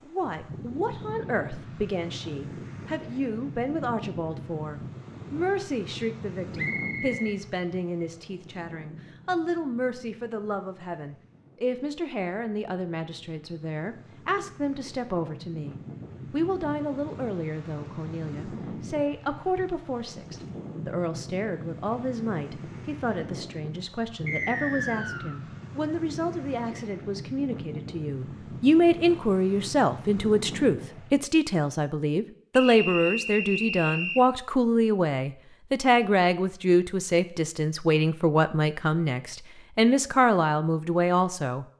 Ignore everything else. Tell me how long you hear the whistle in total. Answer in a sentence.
The whistle can be heard for 4 seconds in total.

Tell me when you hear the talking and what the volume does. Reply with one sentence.
You can hear the talking from 0.0 to 41.6 s, getting louder.